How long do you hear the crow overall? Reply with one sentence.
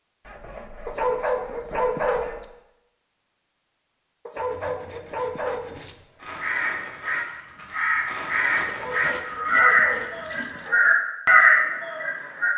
You can hear the crow for 6 seconds altogether.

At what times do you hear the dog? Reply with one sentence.
The dog can be heard from 0.8 to 2.5 s, from 4.2 to 6.0 s and from 8.7 to 10.8 s.